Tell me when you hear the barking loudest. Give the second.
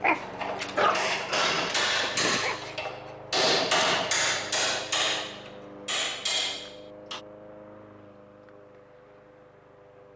1 s.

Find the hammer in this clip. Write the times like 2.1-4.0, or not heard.
0.1-7.2.